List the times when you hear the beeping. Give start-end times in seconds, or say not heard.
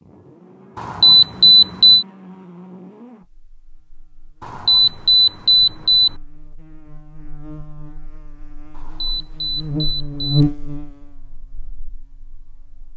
0.8-2.0, 4.4-6.1, 8.8-10.4.